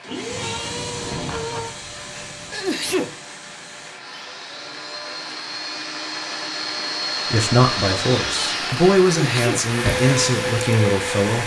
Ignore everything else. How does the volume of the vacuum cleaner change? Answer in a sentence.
The loudness of the vacuum cleaner goes down, then up.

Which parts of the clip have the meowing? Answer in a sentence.
You can hear the meowing from 0.1 to 1.8 s.